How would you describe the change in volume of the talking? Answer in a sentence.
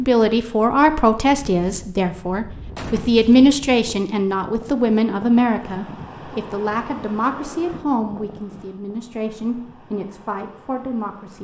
The volume of the talking goes down.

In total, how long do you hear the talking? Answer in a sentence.
You can hear the talking for 11 seconds altogether.